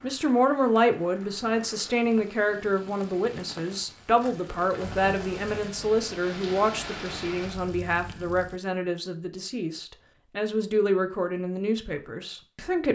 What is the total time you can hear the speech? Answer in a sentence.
You can hear the speech for 13 seconds altogether.